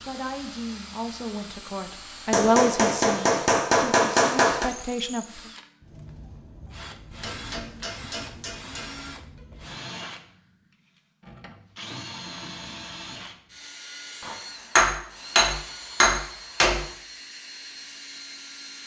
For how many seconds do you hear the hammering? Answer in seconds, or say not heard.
7 s.